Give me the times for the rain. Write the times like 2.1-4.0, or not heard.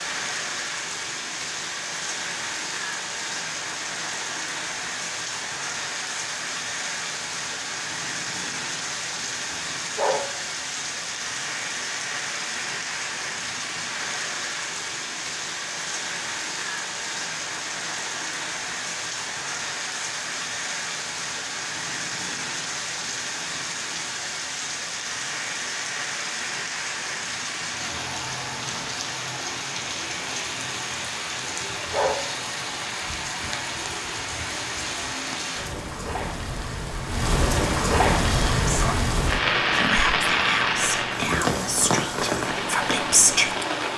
0.0-43.9.